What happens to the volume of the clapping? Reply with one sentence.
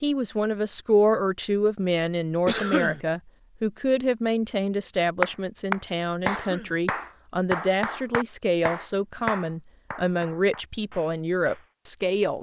The volume of the clapping goes down.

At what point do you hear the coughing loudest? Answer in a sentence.
The loudest moment of the coughing is at 3 seconds.